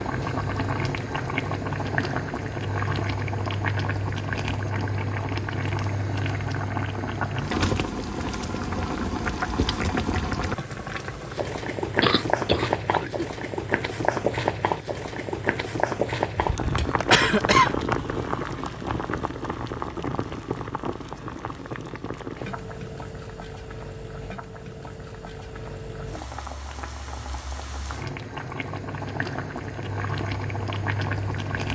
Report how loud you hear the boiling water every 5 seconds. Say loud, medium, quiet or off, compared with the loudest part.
loud, loud, loud, loud, medium, medium, loud.